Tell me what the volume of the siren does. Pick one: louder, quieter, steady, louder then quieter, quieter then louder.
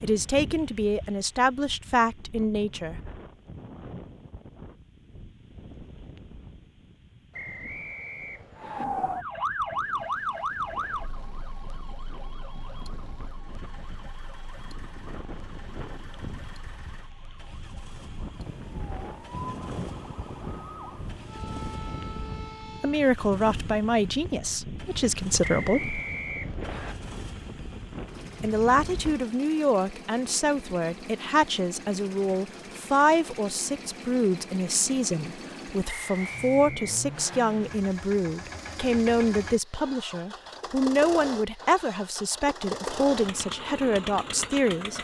quieter then louder.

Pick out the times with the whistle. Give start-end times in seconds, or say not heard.
7.3-8.8, 25.4-26.9, 35.9-37.4.